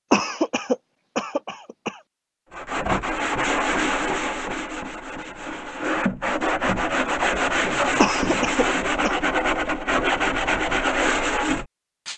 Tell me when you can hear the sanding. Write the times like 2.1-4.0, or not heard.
2.5-12.1.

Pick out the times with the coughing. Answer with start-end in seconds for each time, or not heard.
0.1-1.9, 8.0-9.2.